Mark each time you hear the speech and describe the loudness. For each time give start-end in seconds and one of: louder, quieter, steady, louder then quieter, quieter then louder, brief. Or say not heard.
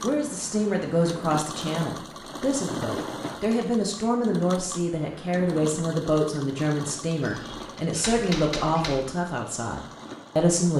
0.0-10.7 steady.